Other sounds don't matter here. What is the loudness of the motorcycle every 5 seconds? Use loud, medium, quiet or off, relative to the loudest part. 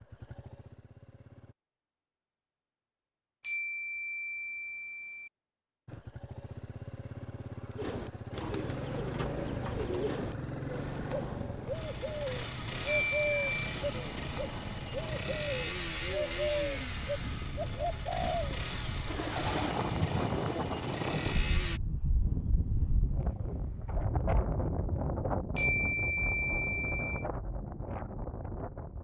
quiet, loud, loud, loud, loud, off.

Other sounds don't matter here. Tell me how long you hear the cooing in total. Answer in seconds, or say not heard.
12 s.